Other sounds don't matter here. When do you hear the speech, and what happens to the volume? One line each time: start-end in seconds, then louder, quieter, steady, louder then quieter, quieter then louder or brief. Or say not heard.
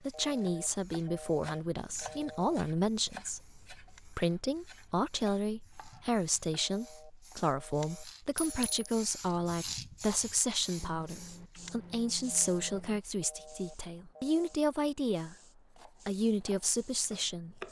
0.0-15.3 steady
16.1-17.6 brief.